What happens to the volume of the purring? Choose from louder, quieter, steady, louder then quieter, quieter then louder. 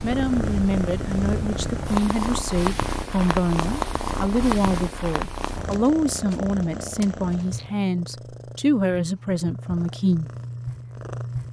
quieter.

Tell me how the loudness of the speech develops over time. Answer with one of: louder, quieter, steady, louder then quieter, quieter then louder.
steady.